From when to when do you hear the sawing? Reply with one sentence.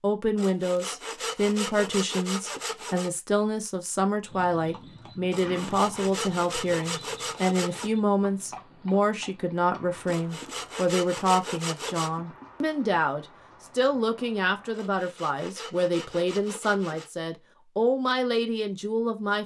The sawing can be heard from 0.3 to 3.1 s, from 5.3 to 7.9 s, from 10.1 to 12.1 s and from 14.7 to 17.1 s.